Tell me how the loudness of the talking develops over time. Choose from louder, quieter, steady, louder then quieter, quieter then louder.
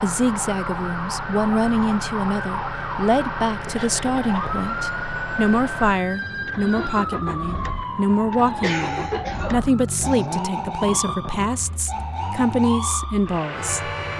steady.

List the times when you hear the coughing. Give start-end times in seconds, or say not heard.
3.8-4.4, 8.6-10.2.